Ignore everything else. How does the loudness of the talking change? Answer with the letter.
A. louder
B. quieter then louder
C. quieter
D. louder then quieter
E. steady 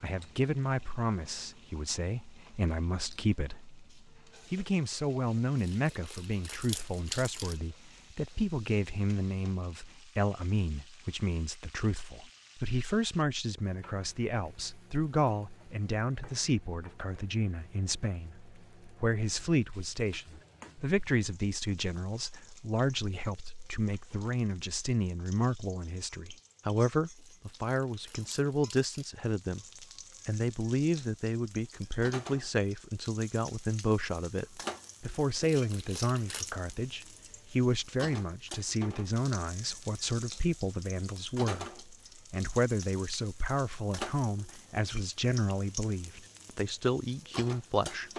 E.